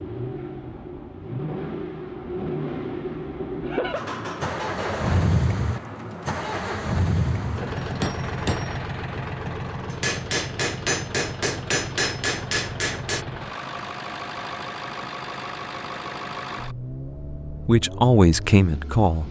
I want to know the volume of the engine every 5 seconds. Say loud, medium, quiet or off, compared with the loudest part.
loud, loud, medium, medium.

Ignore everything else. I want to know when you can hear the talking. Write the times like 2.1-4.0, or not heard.
17.6-19.2.